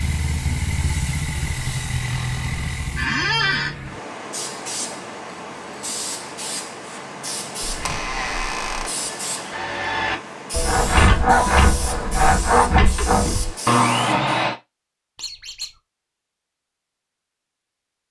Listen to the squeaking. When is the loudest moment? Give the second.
3 s.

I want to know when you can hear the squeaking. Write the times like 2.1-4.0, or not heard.
3.0-3.8, 7.7-8.9, 15.2-15.7.